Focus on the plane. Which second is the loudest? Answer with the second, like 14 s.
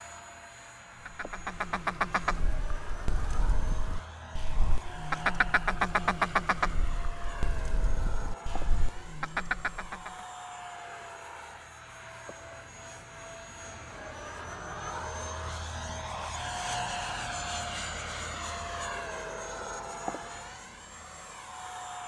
17 s.